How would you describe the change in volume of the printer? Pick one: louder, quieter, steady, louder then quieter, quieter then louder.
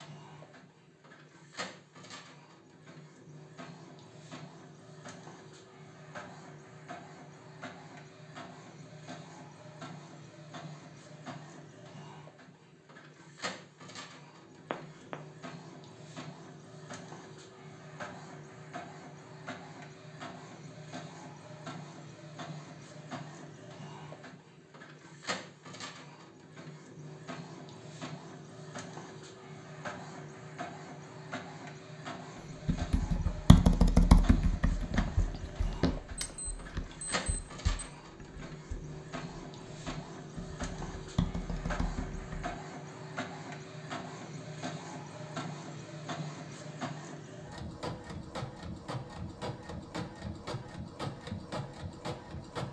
louder.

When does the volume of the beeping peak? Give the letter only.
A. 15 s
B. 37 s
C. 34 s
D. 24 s
A.